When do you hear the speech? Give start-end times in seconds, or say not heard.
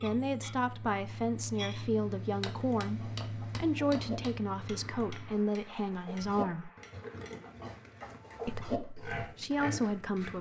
0.0-6.7, 8.4-10.3.